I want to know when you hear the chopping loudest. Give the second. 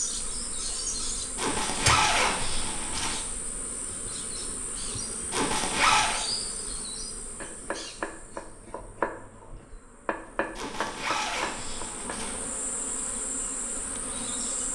9 s.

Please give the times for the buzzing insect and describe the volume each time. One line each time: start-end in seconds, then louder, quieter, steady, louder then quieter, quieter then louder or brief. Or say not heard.
0.0-14.6 quieter then louder.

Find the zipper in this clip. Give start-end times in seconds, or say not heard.
1.4-3.2, 5.3-6.2, 10.6-12.3.